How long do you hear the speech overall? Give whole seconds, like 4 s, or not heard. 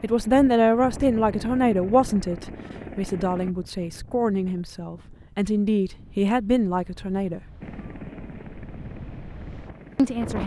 8 s.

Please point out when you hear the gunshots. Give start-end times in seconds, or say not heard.
not heard.